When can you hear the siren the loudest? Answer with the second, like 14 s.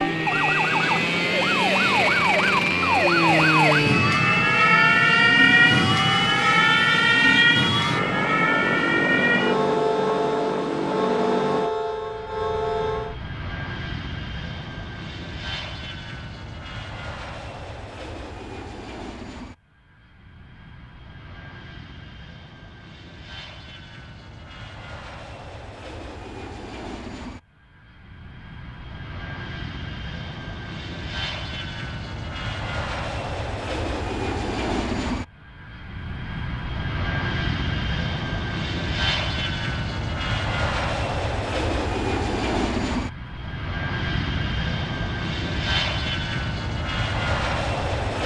5 s.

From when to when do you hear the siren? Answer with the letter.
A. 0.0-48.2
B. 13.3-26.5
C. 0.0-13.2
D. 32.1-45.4
C.